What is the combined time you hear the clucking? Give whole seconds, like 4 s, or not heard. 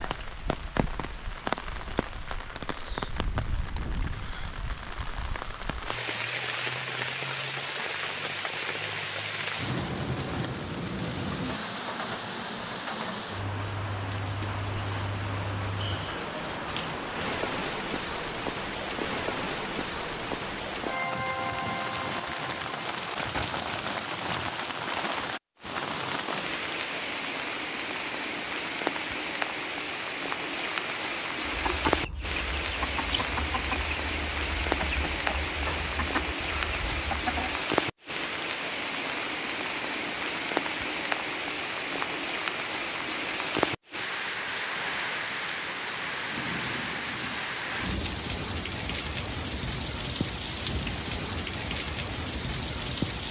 6 s.